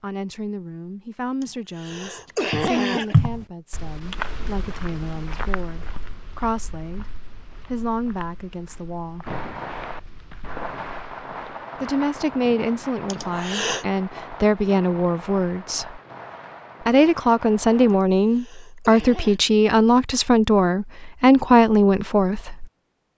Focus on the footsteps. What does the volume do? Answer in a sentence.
The loudness of the footsteps goes down.